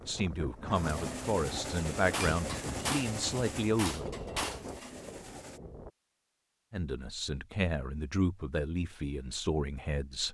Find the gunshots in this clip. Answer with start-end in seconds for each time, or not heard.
2.0-4.9.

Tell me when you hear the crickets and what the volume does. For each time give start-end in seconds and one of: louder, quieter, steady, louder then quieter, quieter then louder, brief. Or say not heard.
not heard.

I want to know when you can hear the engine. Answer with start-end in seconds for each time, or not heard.
0.0-5.6.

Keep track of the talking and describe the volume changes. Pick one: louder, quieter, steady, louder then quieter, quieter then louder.
steady.